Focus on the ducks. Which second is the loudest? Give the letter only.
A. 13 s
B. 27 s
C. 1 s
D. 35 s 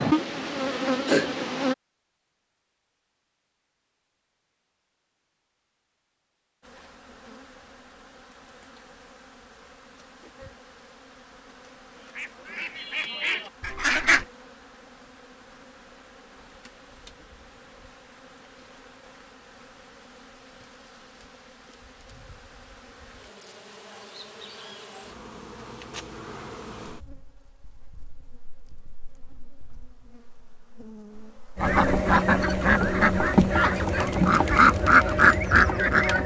D.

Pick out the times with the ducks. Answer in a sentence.
You can hear the ducks from 11.9 to 14.2 s and from 31.6 to 36.2 s.